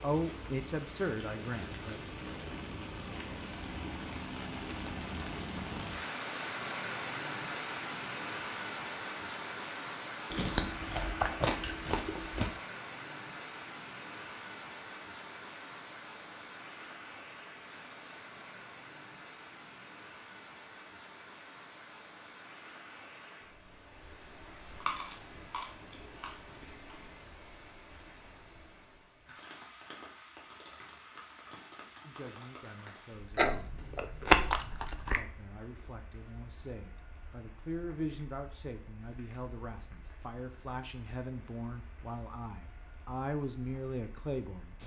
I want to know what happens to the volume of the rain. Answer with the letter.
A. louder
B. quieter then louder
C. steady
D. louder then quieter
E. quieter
E.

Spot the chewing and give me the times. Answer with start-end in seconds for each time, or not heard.
10.3-12.5, 24.8-27.1, 33.4-35.2.